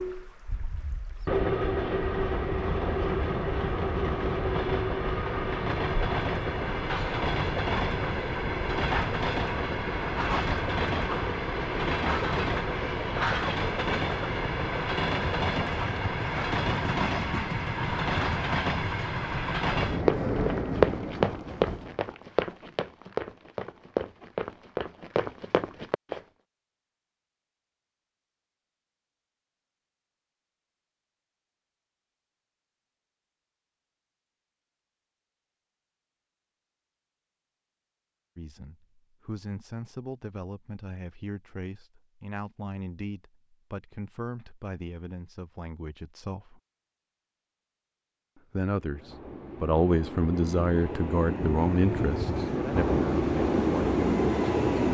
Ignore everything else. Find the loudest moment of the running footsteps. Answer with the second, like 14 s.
21 s.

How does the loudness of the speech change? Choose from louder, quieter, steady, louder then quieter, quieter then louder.
louder.